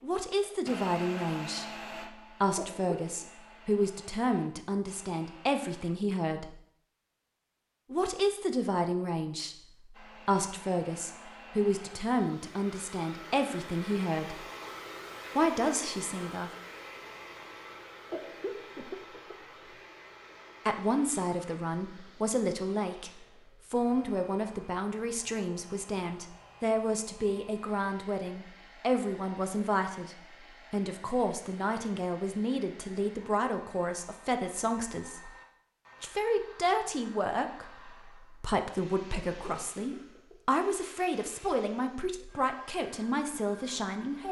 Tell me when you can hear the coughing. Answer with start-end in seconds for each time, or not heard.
2.5-3.3, 18.1-19.8, 39.1-40.5.